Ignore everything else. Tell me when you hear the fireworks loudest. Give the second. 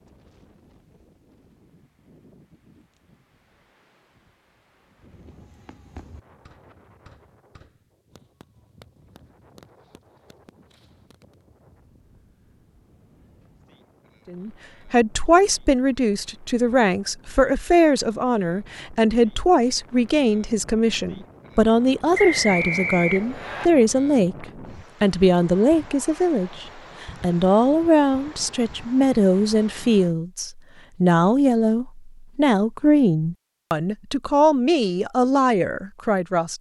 6 s.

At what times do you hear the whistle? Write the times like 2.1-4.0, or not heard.
22.1-23.7.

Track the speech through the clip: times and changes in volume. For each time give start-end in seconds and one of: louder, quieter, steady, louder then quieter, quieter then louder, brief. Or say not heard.
14.3-36.5 steady.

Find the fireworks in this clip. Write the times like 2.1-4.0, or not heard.
5.0-11.4.